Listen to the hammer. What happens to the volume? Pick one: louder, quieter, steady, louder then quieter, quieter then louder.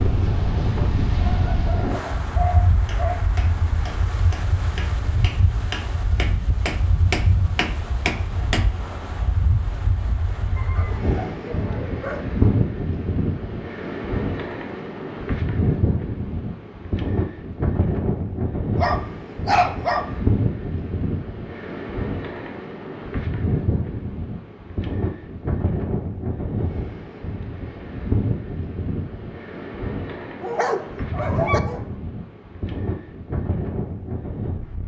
louder.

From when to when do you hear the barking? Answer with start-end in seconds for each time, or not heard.
1.1-3.1, 10.6-12.4, 18.8-20.1, 30.4-31.9.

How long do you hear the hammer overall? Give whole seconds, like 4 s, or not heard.
6 s.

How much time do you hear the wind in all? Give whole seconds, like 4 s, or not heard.
35 s.